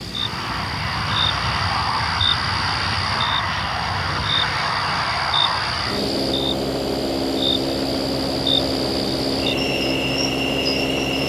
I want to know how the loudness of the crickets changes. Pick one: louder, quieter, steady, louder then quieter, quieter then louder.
steady.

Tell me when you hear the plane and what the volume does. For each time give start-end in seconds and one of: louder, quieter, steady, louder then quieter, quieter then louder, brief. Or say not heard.
0.0-11.2 steady.